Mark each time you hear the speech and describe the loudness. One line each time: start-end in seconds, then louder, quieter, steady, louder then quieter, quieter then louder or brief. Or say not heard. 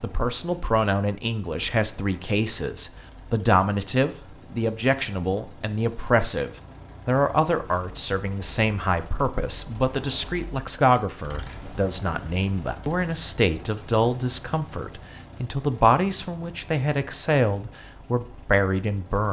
0.0-19.2 steady.